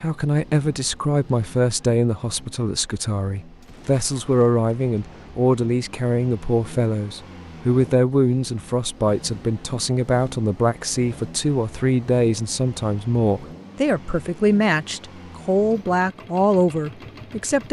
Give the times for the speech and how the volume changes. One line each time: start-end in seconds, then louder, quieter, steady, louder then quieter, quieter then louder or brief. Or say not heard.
0.0-17.6 steady.